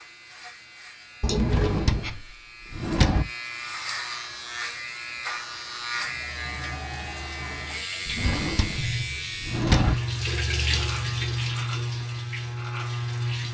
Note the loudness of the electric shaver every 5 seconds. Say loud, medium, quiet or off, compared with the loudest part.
medium, loud, loud.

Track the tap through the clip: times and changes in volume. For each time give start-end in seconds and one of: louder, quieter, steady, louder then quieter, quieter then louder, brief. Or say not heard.
5.9-13.4 louder then quieter.